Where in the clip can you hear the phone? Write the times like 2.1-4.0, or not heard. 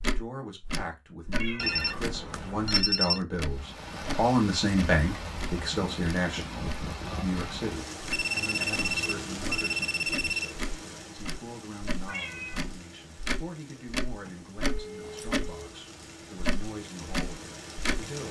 1.6-3.2, 8.1-10.6, 14.2-15.8.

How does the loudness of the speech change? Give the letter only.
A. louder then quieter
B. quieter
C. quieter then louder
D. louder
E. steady
A.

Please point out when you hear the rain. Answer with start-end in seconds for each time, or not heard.
3.5-18.2.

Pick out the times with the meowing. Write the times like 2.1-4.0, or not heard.
1.3-1.8, 12.1-12.7.